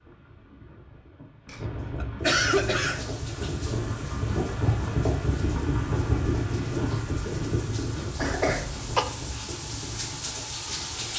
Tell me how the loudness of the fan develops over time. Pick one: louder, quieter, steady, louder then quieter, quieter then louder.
louder then quieter.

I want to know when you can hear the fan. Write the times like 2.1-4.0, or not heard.
0.0-11.1.